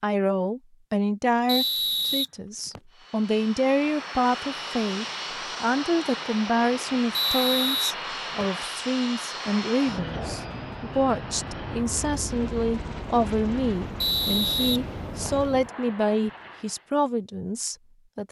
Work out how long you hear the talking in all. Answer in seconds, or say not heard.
18 s.